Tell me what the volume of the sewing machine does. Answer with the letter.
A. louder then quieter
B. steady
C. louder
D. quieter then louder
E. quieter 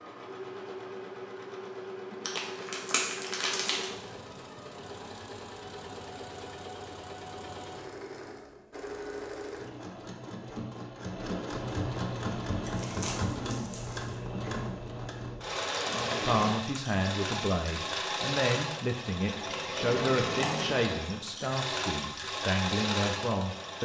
C.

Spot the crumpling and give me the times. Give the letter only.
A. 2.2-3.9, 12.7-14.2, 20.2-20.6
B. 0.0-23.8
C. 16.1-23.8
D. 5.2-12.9
A.